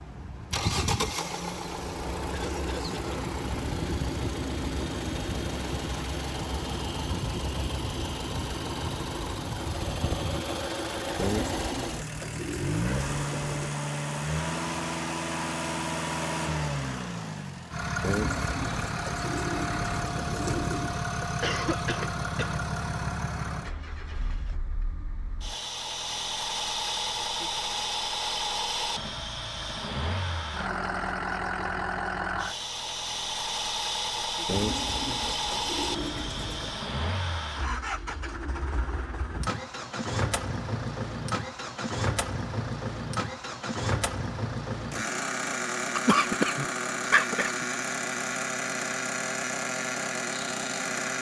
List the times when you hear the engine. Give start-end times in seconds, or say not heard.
0.0-51.1.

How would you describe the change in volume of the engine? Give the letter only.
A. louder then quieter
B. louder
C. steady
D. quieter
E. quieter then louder
C.